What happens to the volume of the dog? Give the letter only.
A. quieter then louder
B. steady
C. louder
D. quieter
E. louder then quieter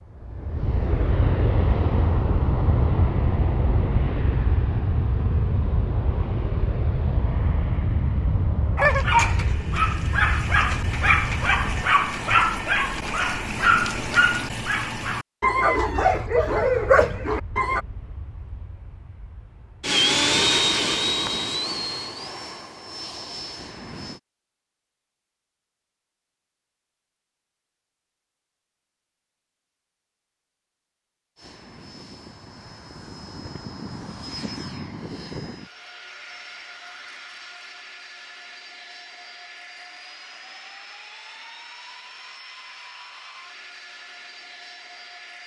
B.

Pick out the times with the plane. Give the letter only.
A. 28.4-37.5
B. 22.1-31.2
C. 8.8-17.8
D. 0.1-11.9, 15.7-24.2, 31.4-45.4
D.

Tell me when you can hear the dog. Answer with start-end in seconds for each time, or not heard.
8.8-17.8.